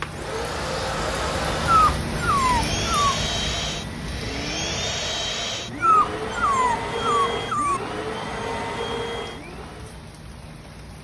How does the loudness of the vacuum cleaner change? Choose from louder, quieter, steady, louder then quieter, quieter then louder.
steady.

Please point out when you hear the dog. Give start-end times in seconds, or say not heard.
1.6-3.2, 5.8-7.8.